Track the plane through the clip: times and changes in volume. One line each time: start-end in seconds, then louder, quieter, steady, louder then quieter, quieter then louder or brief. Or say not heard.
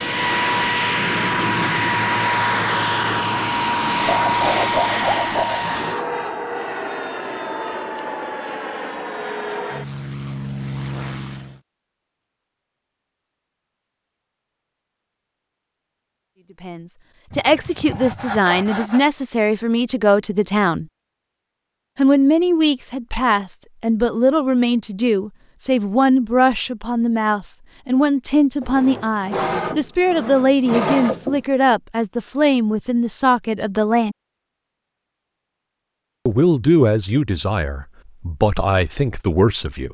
0.0-11.6 quieter.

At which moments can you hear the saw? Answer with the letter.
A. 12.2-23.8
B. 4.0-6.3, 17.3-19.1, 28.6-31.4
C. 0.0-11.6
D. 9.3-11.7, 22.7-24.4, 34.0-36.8
B.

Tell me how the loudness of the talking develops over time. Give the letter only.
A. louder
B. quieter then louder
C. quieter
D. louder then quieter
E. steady
E.